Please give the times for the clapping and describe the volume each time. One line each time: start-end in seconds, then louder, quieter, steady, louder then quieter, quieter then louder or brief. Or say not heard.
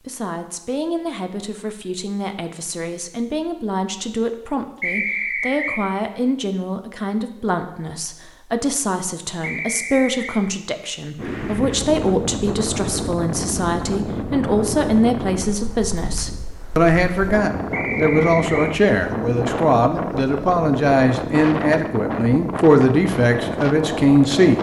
not heard.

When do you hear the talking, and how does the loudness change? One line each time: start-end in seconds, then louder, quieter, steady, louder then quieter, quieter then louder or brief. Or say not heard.
0.1-24.5 louder.